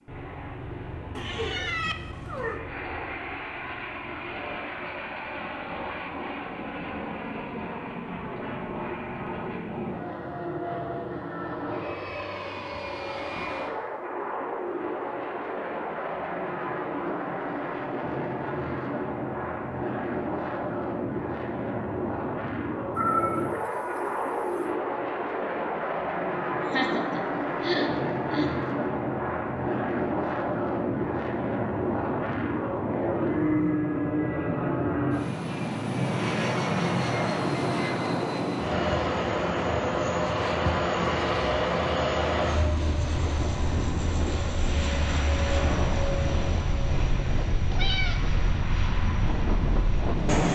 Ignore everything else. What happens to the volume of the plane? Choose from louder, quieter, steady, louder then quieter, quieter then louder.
louder.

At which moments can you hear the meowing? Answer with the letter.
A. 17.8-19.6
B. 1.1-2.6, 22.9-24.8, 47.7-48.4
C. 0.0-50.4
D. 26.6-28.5
B.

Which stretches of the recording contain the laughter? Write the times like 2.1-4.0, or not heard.
26.6-28.5.